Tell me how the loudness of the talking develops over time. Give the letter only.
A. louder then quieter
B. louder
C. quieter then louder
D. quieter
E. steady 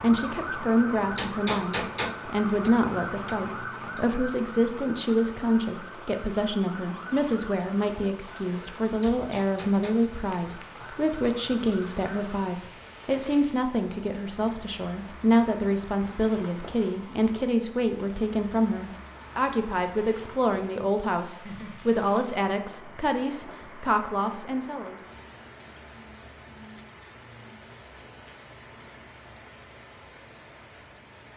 E.